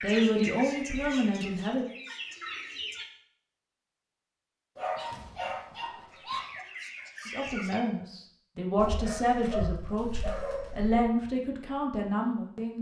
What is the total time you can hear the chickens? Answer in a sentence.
You can hear the chickens for 5 seconds altogether.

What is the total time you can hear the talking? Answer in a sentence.
You can hear the talking for 7 seconds altogether.